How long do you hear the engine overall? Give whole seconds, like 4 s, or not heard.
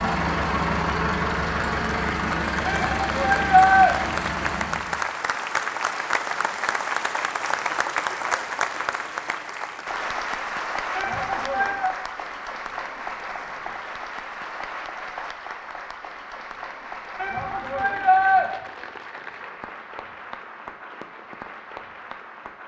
5 s.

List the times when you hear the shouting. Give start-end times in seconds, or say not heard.
2.6-4.0, 10.9-11.9, 17.1-18.4.